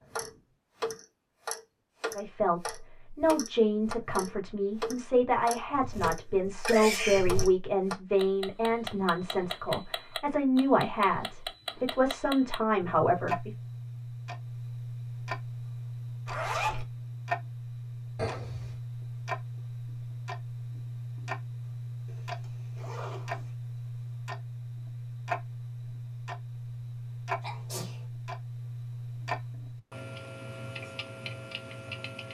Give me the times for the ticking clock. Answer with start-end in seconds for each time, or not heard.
0.0-32.2.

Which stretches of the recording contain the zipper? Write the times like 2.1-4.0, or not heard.
5.7-7.7, 16.2-16.9, 22.1-23.5.